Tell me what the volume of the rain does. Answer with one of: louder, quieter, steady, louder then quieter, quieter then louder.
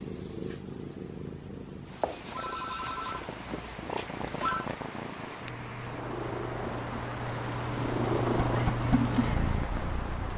louder.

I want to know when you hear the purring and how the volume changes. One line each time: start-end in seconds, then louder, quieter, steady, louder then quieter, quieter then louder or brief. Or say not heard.
0.0-10.3 louder.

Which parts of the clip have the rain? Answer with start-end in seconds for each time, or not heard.
2.8-10.3.